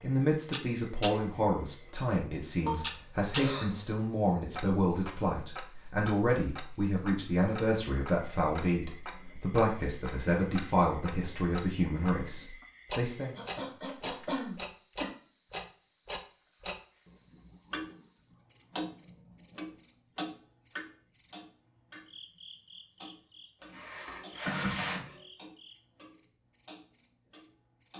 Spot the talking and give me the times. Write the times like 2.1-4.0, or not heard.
0.0-13.3.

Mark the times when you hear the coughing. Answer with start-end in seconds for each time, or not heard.
2.6-3.6, 13.3-15.1, 23.6-25.2.